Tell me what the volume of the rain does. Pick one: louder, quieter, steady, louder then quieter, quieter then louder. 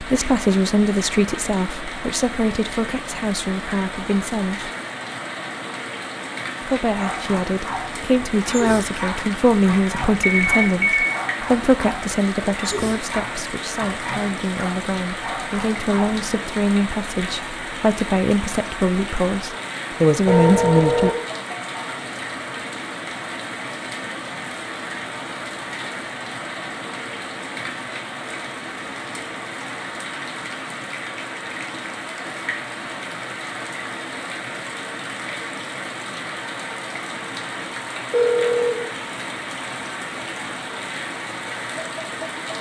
steady.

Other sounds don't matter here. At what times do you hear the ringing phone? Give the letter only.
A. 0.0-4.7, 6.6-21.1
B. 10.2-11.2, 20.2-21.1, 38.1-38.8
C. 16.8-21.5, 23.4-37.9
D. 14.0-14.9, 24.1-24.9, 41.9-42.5
B.